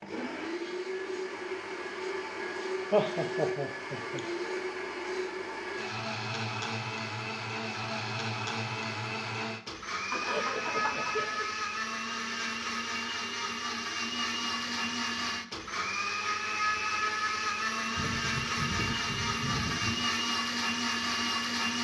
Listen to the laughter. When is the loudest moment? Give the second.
3 s.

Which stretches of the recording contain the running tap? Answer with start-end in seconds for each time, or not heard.
not heard.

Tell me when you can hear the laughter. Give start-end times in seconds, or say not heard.
2.9-4.2, 10.1-11.4, 17.9-20.1.